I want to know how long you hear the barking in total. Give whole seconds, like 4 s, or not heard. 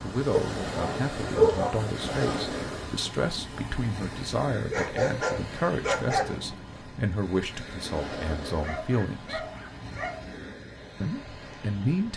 6 s.